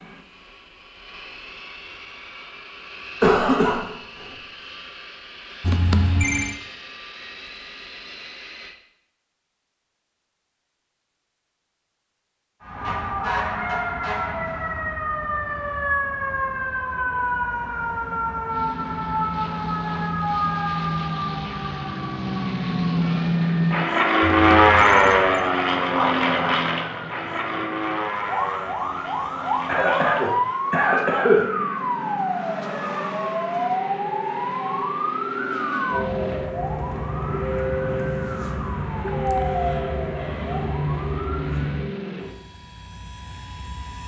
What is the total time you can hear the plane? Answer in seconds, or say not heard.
34 s.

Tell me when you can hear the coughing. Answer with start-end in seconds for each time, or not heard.
3.2-4.3, 29.6-31.4.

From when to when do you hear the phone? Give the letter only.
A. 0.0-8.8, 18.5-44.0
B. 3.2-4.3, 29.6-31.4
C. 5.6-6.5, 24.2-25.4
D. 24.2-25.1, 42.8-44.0
C.